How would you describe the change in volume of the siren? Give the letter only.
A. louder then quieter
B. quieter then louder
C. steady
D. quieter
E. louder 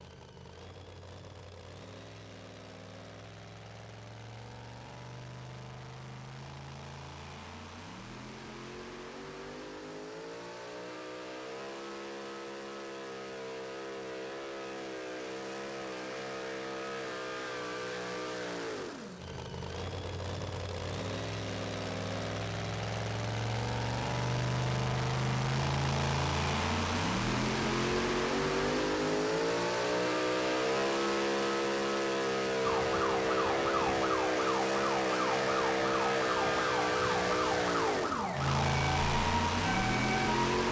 C.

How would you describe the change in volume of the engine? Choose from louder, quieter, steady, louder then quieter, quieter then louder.
louder.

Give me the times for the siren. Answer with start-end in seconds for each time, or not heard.
32.6-40.6.